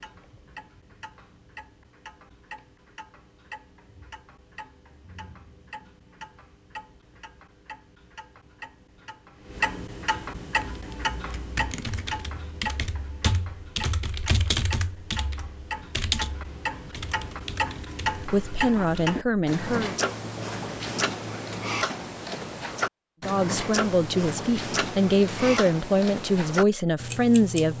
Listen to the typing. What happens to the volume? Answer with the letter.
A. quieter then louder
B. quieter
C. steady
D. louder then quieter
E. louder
D.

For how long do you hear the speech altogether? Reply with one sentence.
The speech can be heard for 6 seconds in total.